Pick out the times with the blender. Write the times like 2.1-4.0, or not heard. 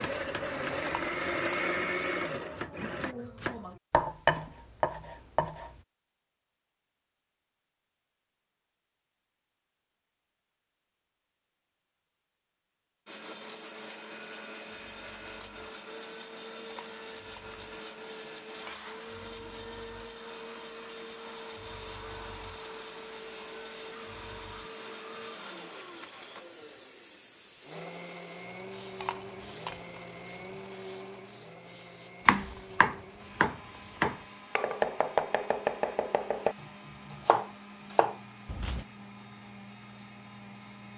0.0-3.1, 13.1-40.9.